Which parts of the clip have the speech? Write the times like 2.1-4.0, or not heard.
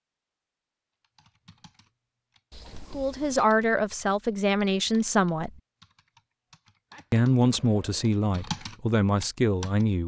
2.9-5.5, 7.1-10.0.